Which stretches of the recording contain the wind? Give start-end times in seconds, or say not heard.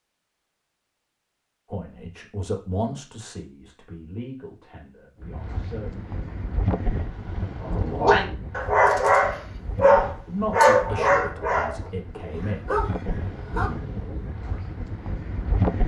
5.2-15.8.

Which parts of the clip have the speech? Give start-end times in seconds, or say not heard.
1.6-6.0, 10.2-13.3.